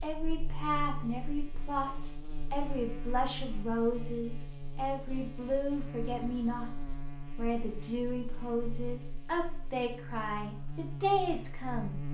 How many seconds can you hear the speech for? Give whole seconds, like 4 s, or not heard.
12 s.